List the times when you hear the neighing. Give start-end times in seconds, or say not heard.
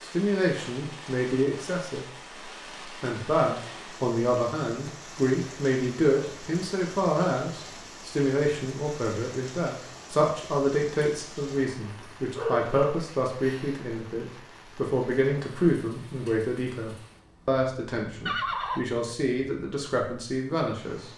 18.2-19.1.